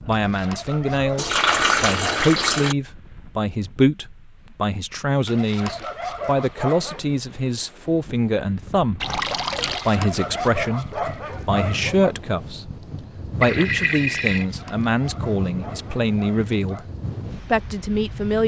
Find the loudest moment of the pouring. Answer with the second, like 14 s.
2 s.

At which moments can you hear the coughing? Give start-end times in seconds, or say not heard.
not heard.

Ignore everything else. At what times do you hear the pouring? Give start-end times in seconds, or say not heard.
1.1-2.8, 9.0-9.9, 13.4-14.4.